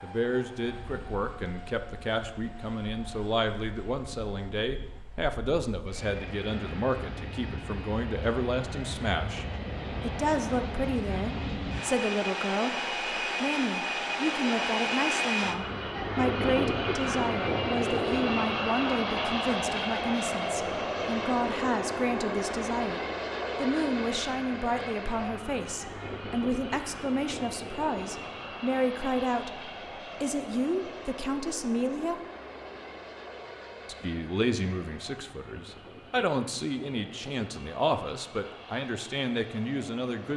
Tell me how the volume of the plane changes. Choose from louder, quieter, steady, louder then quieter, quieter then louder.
louder then quieter.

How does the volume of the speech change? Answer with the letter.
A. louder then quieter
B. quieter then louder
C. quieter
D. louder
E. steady
E.